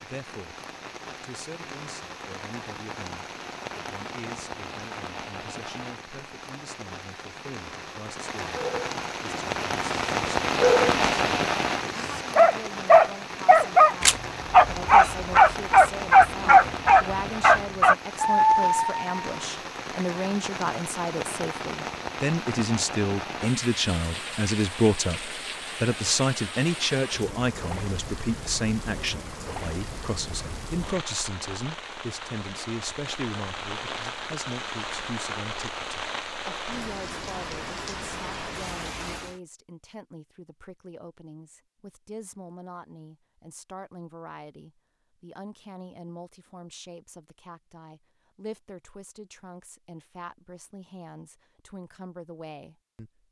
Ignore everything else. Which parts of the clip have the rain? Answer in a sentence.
The rain can be heard from 0.0 to 39.4 s.